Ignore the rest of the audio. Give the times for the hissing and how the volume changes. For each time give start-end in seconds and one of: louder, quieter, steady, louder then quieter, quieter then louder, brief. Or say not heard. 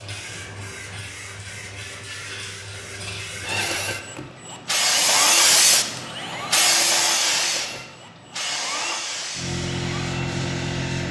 0.0-11.0 louder then quieter.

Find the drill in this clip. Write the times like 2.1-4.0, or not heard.
3.4-11.0.